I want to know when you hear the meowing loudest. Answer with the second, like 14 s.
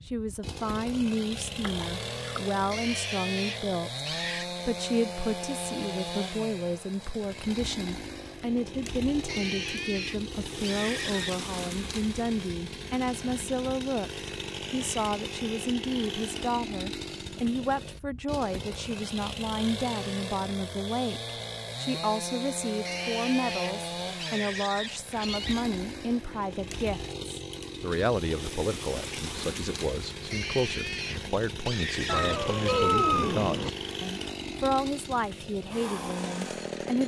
33 s.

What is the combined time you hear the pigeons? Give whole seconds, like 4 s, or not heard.
not heard.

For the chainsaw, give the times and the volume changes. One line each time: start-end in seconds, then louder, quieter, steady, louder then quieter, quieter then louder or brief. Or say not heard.
0.0-37.0 steady.